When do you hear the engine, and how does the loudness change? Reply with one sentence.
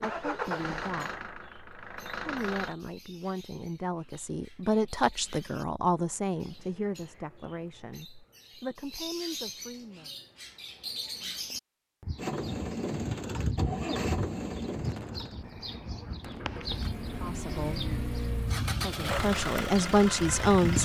The engine can be heard briefly from 0.0 to 2.8 s; and from 12.2 to 20.7 s, getting quieter then louder.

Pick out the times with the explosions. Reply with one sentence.
You can hear the explosions from 14.8 to 16.6 s.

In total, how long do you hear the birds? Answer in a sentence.
You can hear the birds for 21 seconds altogether.